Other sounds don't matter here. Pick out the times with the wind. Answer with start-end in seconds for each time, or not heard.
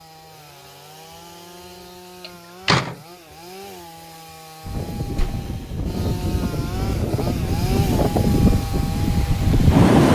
4.6-10.0.